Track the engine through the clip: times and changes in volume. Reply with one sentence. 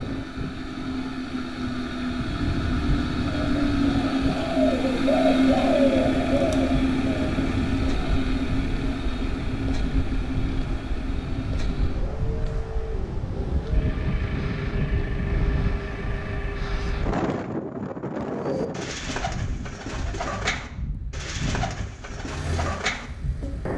The engine can be heard from 0.0 to 17.1 s, getting louder then quieter; and briefly from 22.2 to 23.7 s.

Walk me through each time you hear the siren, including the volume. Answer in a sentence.
You can't hear the siren here.